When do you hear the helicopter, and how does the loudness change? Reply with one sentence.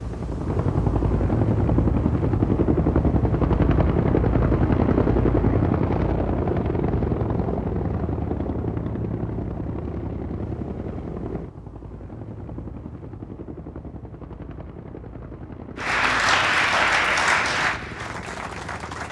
The helicopter can be heard from 0.0 to 19.0 s, getting quieter.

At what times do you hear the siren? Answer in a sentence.
You can't hear the siren here.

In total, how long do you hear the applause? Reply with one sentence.
The applause can be heard for 3 seconds in total.